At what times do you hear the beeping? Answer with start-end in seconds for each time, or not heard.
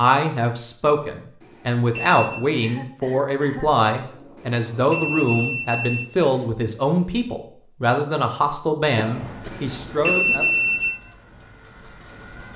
1.4-2.5, 4.3-6.3, 9.5-11.0.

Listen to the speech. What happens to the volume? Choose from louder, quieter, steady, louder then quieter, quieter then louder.
steady.